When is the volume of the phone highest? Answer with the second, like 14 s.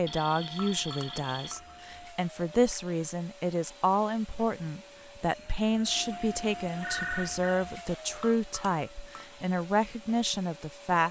7 s.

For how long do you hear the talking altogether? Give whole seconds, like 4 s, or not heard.
11 s.